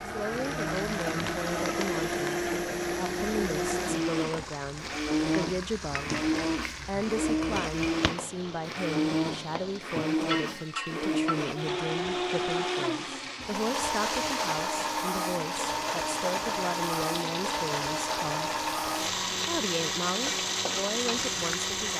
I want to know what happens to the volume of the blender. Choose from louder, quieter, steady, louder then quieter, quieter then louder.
steady.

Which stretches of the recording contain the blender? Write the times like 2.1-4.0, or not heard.
0.0-21.9.